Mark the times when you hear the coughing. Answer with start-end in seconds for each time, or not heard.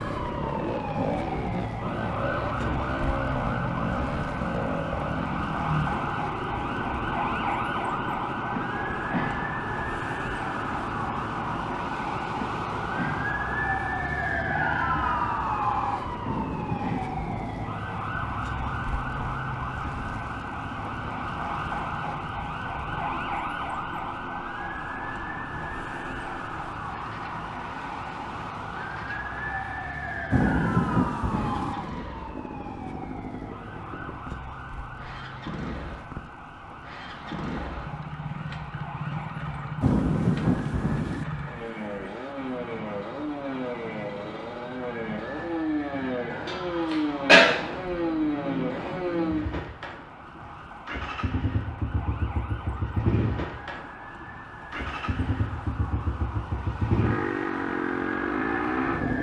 46.5-47.4.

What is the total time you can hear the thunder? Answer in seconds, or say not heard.
4 s.